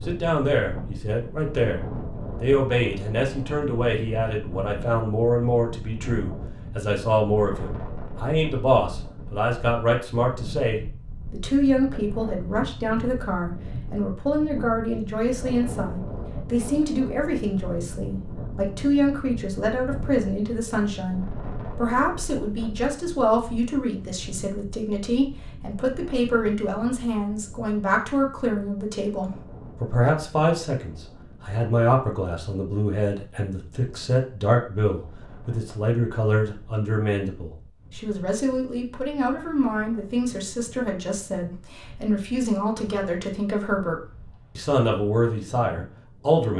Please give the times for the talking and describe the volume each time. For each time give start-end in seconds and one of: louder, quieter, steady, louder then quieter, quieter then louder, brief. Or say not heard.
0.1-1.8 brief
2.4-46.5 steady.